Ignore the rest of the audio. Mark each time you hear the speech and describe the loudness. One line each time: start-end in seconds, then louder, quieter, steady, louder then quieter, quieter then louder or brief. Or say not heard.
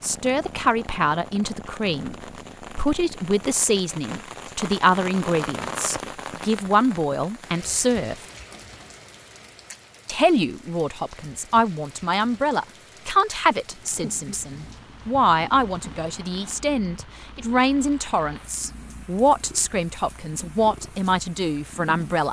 0.0-8.2 steady
10.1-22.2 steady.